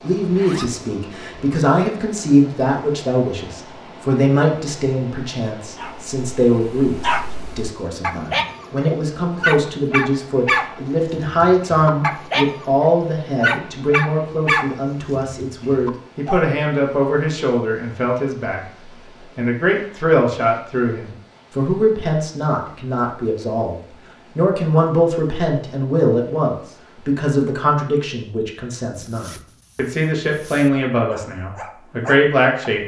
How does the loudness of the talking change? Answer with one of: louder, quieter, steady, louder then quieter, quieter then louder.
steady.